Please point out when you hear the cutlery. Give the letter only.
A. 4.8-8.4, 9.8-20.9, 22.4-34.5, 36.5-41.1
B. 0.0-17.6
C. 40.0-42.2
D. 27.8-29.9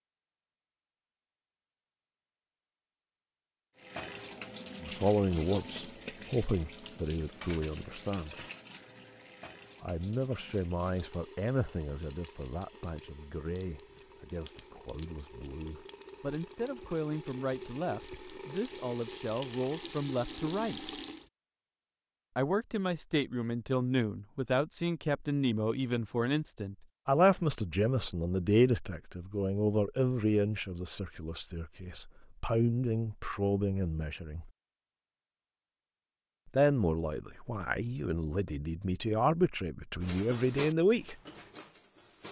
C.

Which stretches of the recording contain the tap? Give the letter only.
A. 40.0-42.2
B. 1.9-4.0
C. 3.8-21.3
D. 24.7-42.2
C.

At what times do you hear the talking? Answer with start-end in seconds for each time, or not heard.
4.8-8.4, 9.8-20.9, 22.4-34.5, 36.5-41.1.